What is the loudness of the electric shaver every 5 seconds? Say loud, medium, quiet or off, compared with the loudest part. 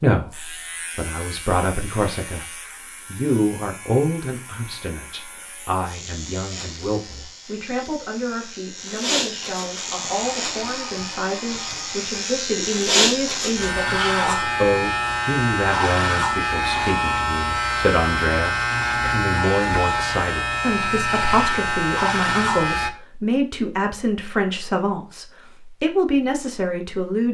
quiet, medium, loud, loud, loud, off.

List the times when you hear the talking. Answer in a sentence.
You can hear the talking from 0.0 to 2.5 s and from 3.0 to 27.2 s.